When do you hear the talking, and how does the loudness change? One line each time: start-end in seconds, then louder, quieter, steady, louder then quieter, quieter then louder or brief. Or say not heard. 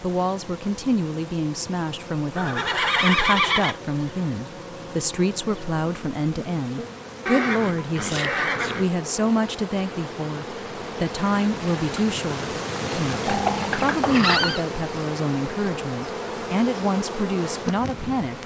0.0-18.4 steady.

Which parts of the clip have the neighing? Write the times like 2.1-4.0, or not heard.
2.4-3.8, 7.2-8.9, 13.2-14.7.